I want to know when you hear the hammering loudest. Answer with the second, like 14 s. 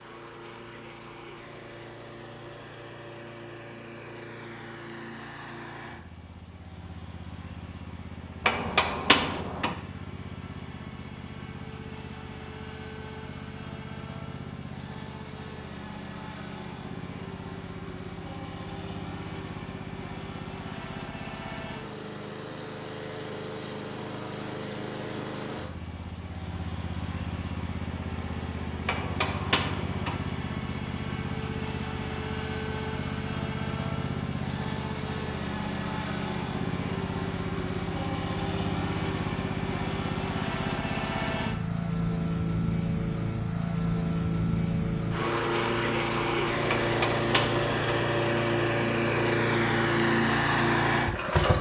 9 s.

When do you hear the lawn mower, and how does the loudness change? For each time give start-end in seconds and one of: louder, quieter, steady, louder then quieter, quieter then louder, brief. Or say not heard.
0.0-51.5 louder.